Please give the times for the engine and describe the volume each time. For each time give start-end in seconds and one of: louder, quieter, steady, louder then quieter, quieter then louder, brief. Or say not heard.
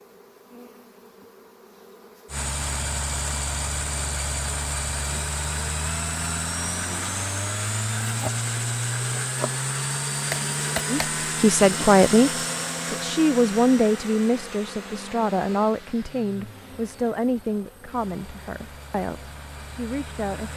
2.2-20.5 quieter.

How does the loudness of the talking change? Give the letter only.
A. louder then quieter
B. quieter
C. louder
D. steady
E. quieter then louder
B.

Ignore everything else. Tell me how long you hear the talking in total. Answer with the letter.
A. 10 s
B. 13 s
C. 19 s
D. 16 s
A.